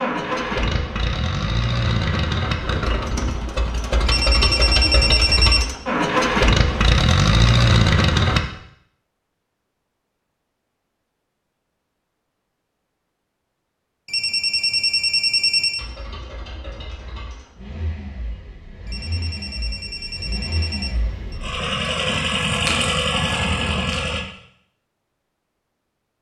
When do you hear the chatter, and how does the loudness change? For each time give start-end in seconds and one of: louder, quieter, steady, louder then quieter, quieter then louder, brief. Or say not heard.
not heard.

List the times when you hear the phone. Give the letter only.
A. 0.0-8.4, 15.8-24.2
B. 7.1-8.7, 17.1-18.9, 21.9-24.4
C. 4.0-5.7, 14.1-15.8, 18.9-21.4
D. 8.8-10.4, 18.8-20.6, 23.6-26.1
C.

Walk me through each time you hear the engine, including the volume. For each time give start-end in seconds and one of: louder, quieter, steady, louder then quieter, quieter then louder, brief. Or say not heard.
0.0-8.4 louder
15.8-24.2 louder.